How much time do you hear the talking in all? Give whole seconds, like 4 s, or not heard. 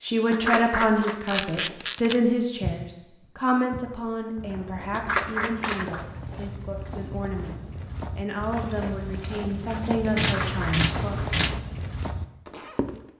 11 s.